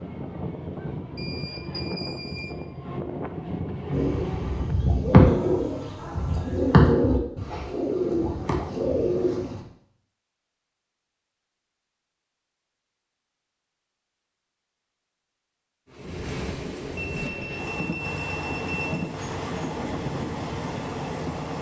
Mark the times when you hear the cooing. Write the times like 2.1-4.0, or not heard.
3.9-9.6.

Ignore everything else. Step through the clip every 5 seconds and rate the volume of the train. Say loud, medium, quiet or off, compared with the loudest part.
loud, off, off, loud, loud.